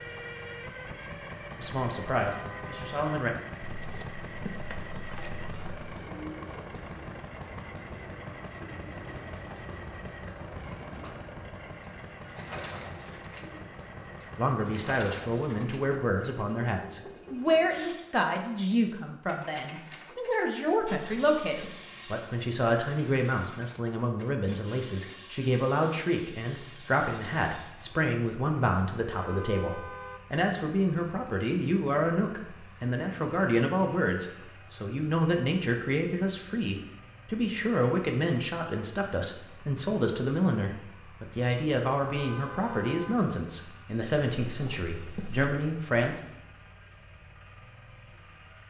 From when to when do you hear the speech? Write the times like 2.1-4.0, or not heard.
1.6-3.3, 14.3-46.2.